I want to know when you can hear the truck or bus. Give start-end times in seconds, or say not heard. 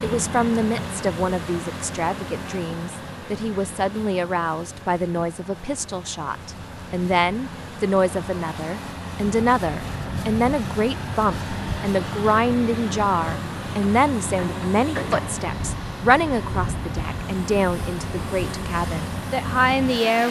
0.0-20.2.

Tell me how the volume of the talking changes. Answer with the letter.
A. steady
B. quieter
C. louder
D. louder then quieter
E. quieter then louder
A.